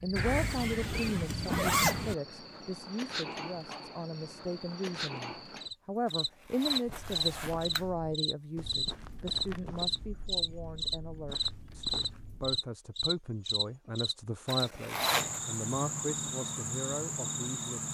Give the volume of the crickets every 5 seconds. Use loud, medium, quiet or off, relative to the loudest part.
medium, loud, loud, loud.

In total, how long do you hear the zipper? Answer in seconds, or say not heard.
4 s.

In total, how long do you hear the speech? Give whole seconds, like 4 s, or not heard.
18 s.